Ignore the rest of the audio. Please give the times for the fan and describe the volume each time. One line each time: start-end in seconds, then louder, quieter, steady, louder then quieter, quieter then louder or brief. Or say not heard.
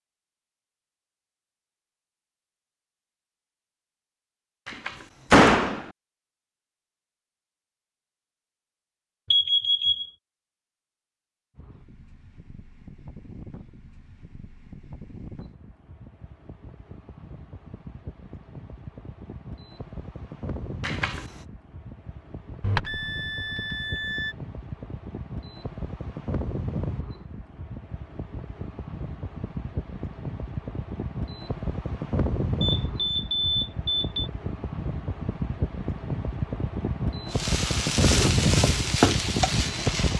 11.6-40.1 louder.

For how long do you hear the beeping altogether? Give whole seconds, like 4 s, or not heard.
4 s.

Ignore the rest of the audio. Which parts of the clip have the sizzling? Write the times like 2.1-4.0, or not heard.
37.3-40.1.